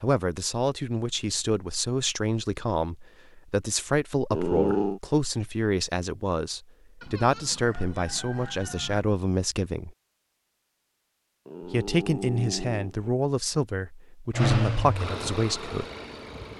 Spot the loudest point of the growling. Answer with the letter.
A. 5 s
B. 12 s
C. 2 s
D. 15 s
A.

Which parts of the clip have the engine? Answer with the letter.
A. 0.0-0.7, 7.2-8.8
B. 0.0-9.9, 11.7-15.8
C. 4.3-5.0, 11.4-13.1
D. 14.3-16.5
D.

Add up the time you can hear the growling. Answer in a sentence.
You can hear the growling for 2 seconds altogether.